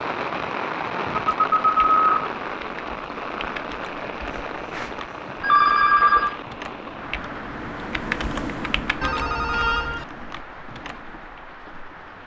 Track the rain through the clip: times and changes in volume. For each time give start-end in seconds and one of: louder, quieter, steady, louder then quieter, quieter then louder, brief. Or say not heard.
0.0-12.2 quieter.